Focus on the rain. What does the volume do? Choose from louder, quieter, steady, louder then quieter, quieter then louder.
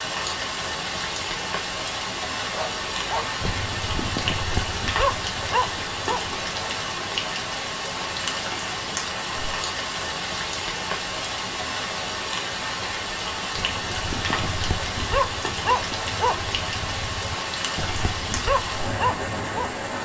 steady.